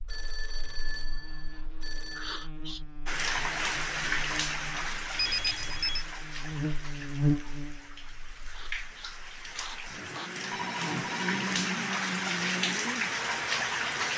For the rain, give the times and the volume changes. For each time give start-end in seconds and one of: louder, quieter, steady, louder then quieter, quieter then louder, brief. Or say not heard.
3.0-14.1 quieter then louder.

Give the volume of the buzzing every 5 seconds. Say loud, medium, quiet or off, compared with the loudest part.
quiet, loud, loud.